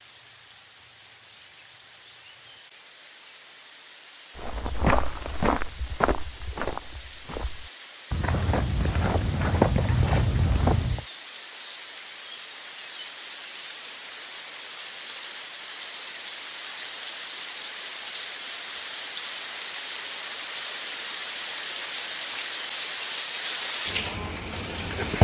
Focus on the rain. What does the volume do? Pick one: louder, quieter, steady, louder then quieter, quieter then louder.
louder.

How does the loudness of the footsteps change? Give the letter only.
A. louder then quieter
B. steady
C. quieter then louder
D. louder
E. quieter
C.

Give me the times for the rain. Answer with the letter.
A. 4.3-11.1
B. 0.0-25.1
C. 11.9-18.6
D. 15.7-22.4
B.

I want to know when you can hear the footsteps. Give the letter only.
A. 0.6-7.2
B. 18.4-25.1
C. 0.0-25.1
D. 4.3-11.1
D.